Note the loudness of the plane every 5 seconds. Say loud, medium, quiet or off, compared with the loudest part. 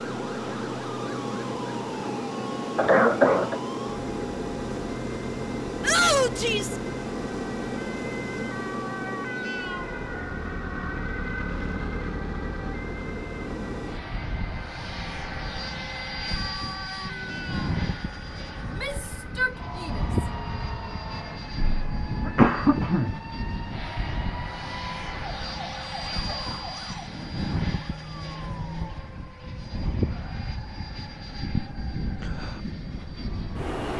loud, loud, medium, loud, loud, loud, loud.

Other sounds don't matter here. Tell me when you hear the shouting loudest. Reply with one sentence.
The loudest moment of the shouting is at 6 seconds.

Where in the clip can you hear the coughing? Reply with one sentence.
You can hear the coughing from 2.8 to 3.6 s and from 21.6 to 23.2 s.